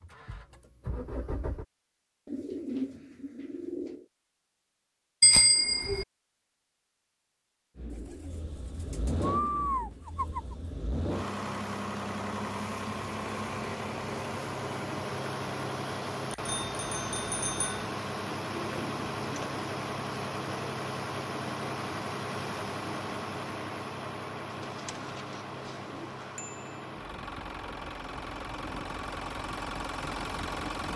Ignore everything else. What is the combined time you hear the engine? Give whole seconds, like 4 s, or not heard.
25 s.